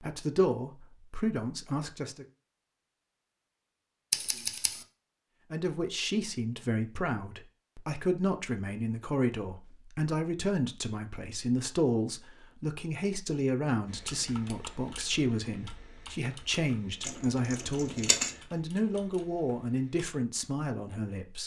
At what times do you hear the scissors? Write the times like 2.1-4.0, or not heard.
4.1-4.8, 17.0-18.4.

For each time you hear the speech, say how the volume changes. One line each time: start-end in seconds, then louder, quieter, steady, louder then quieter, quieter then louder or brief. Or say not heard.
0.0-2.2 brief
5.5-21.4 steady.